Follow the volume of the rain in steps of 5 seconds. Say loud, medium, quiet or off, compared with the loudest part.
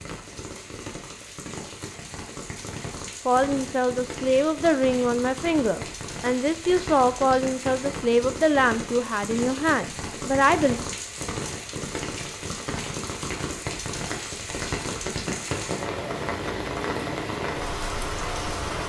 medium, medium, loud, loud.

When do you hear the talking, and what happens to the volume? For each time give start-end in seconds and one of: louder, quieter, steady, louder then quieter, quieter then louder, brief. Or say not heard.
3.2-10.8 steady.